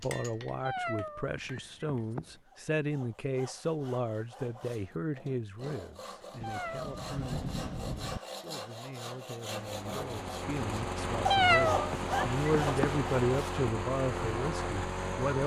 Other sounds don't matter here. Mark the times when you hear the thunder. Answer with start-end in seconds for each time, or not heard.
6.4-8.2.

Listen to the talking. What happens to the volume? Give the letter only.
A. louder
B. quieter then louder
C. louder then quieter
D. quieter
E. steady
B.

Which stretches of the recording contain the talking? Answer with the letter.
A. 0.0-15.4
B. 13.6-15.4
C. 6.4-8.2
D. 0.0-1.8
A.